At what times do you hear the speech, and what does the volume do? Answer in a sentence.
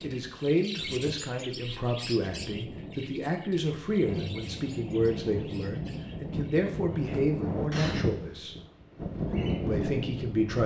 The speech can be heard from 0.0 to 8.6 s, at a steady volume; and briefly from 9.7 to 10.6 s.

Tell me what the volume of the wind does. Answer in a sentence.
The loudness of the wind goes up.